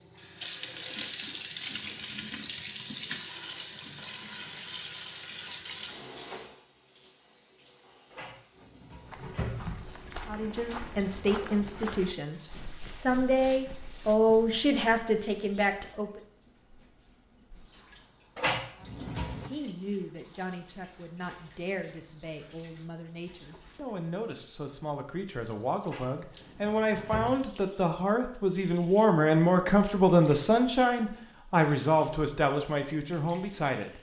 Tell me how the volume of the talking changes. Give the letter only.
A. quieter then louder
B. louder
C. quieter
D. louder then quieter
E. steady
A.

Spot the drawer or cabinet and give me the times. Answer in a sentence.
You can hear the drawer or cabinet from 8.1 to 9.7 s, from 18.4 to 19.5 s and from 25.9 to 27.4 s.